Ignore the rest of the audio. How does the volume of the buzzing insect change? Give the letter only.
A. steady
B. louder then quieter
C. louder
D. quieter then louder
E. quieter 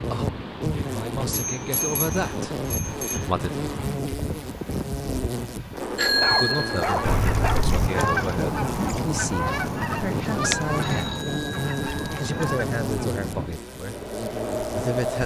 A.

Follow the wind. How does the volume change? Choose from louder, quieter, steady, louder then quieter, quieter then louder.
steady.